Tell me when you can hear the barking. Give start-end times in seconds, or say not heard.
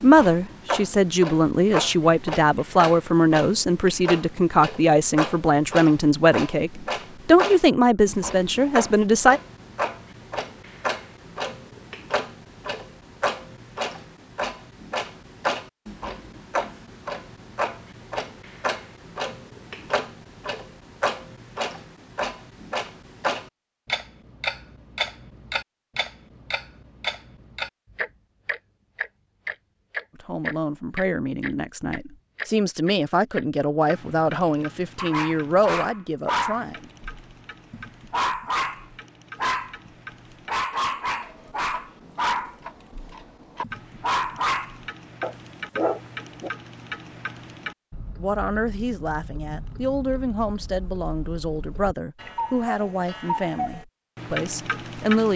35.0-46.5.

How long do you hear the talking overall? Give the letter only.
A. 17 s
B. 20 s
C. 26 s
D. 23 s
D.